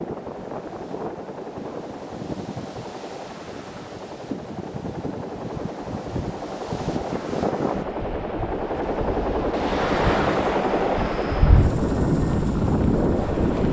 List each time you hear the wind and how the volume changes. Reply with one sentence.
You can hear the wind from 0.0 to 13.6 s, getting louder.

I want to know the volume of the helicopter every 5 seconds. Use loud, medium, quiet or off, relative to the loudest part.
medium, loud, loud.